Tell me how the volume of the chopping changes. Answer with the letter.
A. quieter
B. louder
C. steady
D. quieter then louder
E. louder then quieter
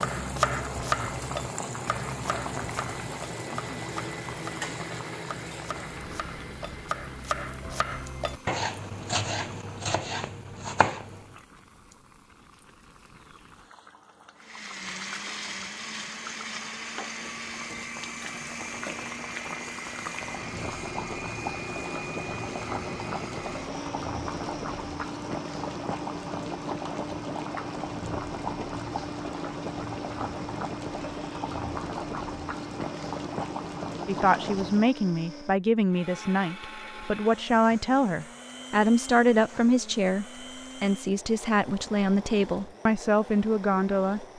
D.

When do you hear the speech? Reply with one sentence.
You can hear the speech from 34.0 to 44.2 s.